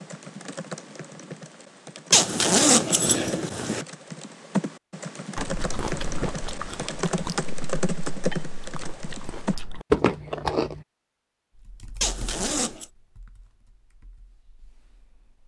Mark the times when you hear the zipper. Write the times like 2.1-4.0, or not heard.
2.1-3.9, 12.0-12.8.